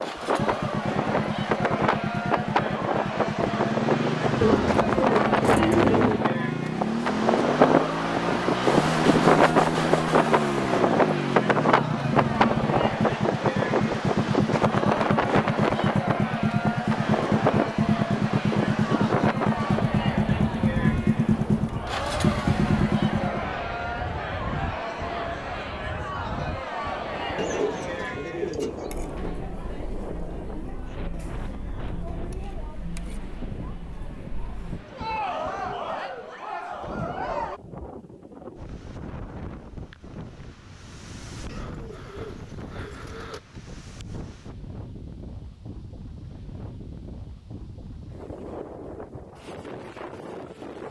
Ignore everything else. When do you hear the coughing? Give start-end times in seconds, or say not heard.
not heard.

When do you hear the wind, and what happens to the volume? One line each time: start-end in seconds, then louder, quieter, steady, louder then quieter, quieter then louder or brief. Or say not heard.
0.0-50.8 quieter.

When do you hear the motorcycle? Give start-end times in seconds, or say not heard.
0.0-23.5.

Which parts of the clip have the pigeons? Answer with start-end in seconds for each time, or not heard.
4.4-6.3, 27.4-28.9, 41.5-43.4.